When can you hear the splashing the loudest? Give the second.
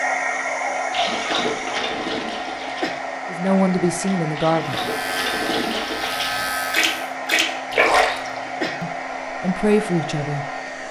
8 s.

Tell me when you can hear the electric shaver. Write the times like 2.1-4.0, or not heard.
4.8-7.0.